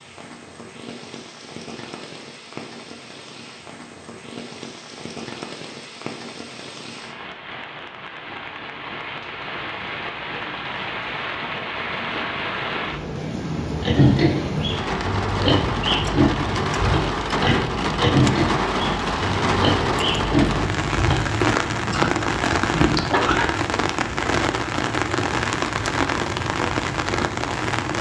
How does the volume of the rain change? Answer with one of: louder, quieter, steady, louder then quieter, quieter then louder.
louder.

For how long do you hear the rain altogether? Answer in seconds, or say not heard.
28 s.